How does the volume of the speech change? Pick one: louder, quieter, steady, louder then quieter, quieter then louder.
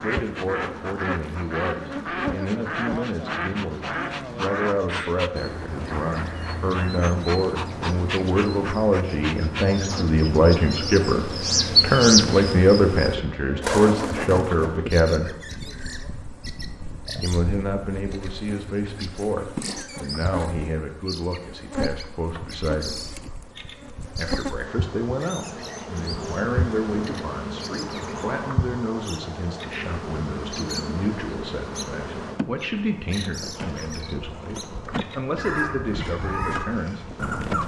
louder then quieter.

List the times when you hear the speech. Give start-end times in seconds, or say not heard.
0.0-15.3, 17.2-23.0, 24.1-37.1.